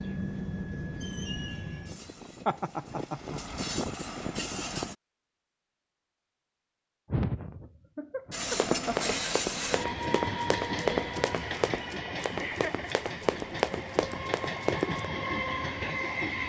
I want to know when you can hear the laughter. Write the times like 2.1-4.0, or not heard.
2.5-3.4, 7.1-9.2, 12.4-13.1.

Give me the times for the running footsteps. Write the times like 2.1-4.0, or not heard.
8.4-15.1.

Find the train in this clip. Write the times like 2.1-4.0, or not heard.
0.0-5.0, 8.3-16.4.